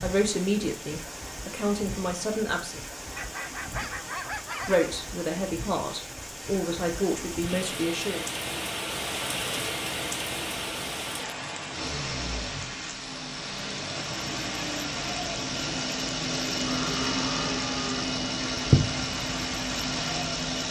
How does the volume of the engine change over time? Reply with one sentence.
The loudness of the engine goes up.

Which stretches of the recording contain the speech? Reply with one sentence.
The speech can be heard from 0.0 to 2.8 s and from 4.7 to 8.2 s.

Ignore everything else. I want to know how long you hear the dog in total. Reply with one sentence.
You can hear the dog for 2 seconds altogether.